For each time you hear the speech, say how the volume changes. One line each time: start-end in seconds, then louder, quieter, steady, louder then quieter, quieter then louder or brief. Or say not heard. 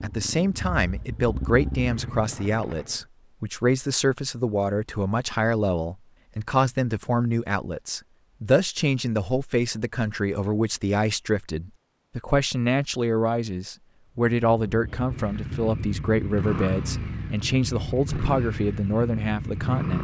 0.0-20.0 steady.